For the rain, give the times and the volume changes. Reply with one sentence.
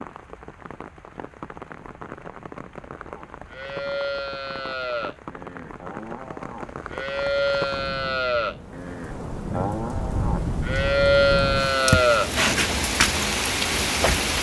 You can hear the rain from 0.0 to 14.3 s, getting louder.